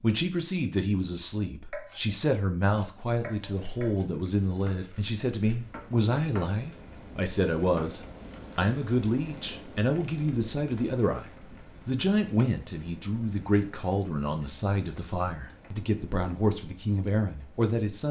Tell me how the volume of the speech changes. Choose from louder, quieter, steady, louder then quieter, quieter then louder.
steady.